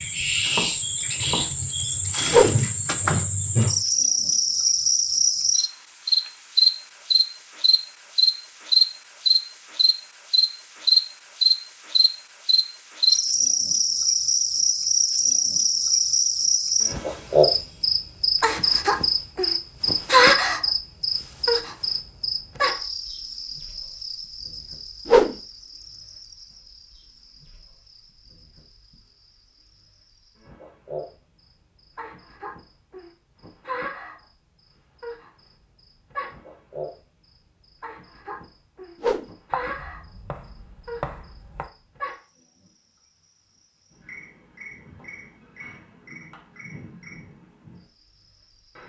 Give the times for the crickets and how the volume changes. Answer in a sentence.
You can hear the crickets from 0.0 to 48.8 s, getting quieter.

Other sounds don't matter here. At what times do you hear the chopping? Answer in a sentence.
You can hear the chopping from 0.2 to 2.1 s and from 39.5 to 41.7 s.